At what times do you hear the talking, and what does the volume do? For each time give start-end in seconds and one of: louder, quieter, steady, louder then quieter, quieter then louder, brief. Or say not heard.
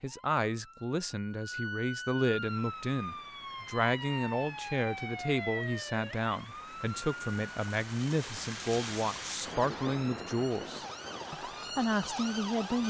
0.0-12.8 steady.